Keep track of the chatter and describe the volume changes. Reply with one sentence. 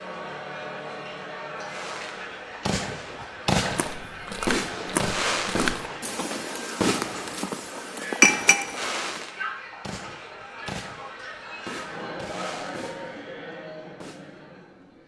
The loudness of the chatter stays about the same.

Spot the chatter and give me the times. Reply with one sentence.
You can hear the chatter from 0.0 to 15.0 s.